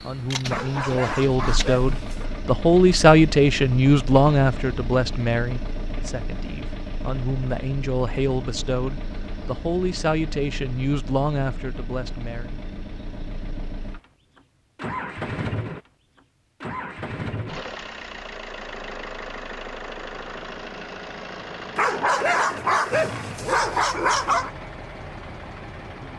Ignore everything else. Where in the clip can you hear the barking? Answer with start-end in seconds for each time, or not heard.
0.5-2.3, 21.8-24.5.